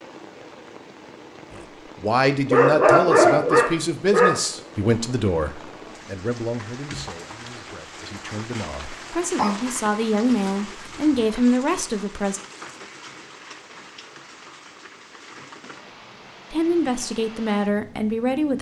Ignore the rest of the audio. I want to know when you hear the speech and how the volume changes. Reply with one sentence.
You can hear the speech from 1.5 to 12.4 s, getting quieter then louder; and briefly from 16.5 to 18.5 s.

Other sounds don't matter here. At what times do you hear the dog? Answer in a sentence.
The dog can be heard from 2.5 to 4.3 s and from 9.3 to 11.3 s.